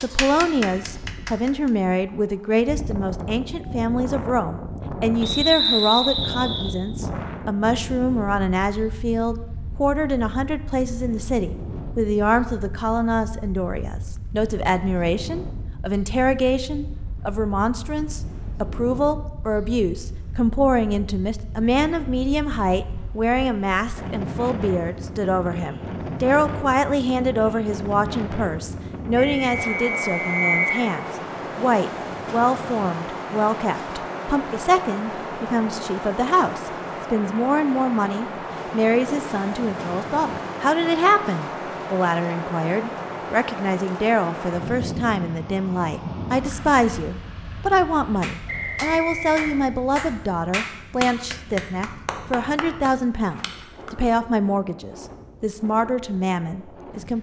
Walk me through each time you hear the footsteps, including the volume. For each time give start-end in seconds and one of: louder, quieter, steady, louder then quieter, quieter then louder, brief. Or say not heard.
not heard.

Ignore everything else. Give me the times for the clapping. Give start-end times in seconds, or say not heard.
0.0-1.7, 48.2-53.9.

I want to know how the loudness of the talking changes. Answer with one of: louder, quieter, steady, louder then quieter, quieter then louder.
steady.